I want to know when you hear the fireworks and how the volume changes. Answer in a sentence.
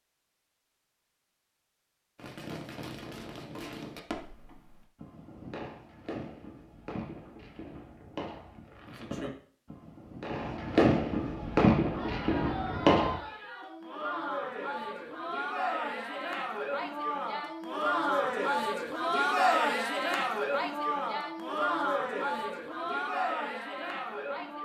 The fireworks can be heard from 2.1 to 13.2 s, getting louder.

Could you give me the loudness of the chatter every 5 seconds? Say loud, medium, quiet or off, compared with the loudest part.
off, off, medium, loud, loud.